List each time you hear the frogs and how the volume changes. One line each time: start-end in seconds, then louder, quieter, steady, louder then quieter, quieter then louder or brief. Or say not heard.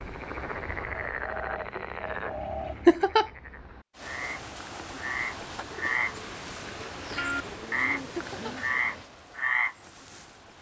0.0-10.3 quieter then louder.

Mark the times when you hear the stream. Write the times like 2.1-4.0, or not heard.
3.9-10.5.